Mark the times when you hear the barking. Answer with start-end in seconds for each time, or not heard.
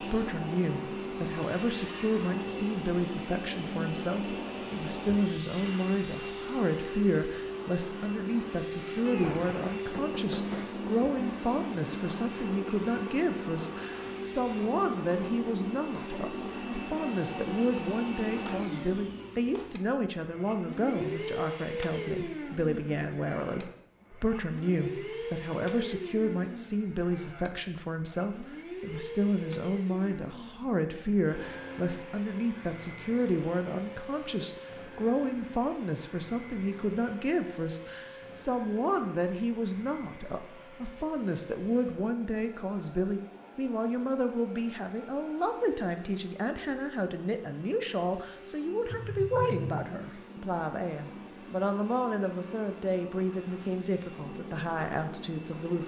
not heard.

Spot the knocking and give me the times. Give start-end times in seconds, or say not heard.
9.1-10.8, 48.9-49.9.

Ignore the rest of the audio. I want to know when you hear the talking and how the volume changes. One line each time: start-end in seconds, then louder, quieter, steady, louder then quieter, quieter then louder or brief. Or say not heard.
0.0-55.8 steady.